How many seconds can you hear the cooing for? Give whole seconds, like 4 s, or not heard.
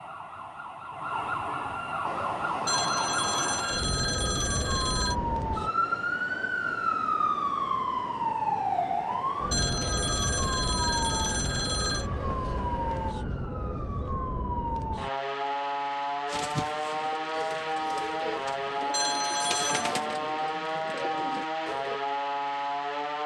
6 s.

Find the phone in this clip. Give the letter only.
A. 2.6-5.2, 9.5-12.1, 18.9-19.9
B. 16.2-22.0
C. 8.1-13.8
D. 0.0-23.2
A.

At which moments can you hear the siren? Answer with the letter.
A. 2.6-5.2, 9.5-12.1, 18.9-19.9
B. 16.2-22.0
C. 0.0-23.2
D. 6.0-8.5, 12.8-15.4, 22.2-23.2
C.